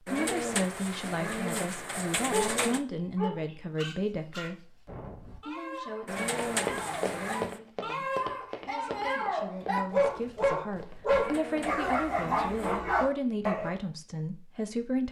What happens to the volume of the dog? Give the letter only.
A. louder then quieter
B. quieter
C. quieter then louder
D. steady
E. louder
E.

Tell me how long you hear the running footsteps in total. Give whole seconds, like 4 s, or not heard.
5 s.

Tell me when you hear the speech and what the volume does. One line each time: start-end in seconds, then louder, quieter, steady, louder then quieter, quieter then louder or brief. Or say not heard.
0.1-15.0 quieter then louder.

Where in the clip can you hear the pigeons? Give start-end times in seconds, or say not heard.
0.1-2.8, 6.0-7.6, 11.1-12.8.